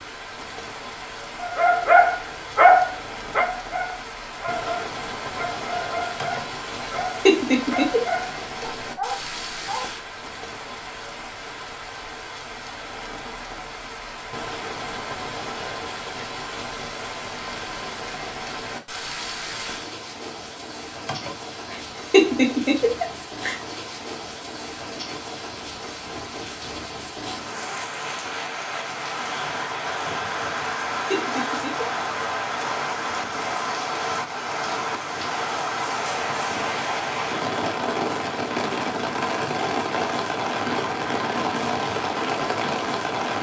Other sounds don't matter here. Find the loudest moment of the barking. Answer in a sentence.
The volume of the barking peaks at 3 seconds.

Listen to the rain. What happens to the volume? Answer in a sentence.
The loudness of the rain goes up.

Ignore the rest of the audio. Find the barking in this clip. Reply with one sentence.
You can hear the barking from 1.4 to 9.9 s.